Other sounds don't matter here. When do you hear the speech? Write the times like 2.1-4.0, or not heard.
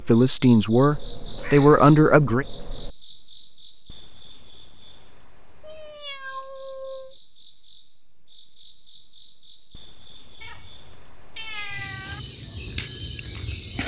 0.0-2.5.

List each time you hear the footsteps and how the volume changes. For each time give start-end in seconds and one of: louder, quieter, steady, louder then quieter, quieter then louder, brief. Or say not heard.
not heard.